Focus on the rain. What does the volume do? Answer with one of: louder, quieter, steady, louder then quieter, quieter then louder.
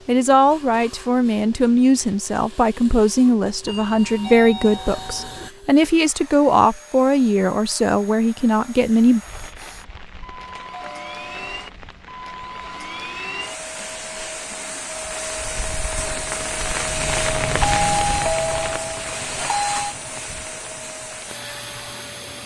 louder then quieter.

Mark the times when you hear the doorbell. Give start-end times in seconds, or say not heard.
3.6-5.5, 10.7-11.6, 17.6-19.9.